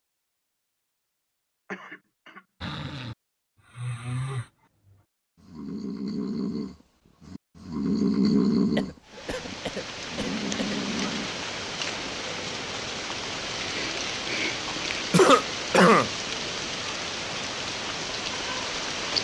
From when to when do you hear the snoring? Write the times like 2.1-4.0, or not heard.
2.6-11.3.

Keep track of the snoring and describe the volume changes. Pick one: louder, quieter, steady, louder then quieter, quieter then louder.
louder then quieter.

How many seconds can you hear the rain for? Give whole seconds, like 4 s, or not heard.
10 s.